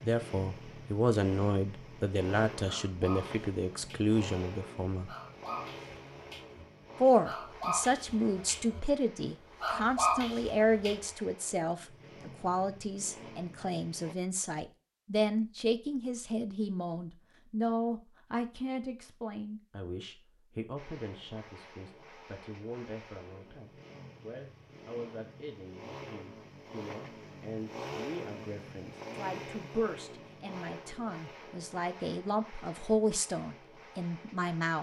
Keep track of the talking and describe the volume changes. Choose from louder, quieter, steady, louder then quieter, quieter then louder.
quieter then louder.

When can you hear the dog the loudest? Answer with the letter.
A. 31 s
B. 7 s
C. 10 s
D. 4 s
C.